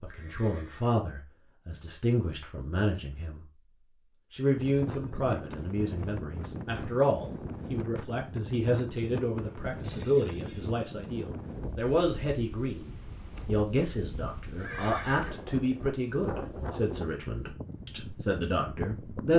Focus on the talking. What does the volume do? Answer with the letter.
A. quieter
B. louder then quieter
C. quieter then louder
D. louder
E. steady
E.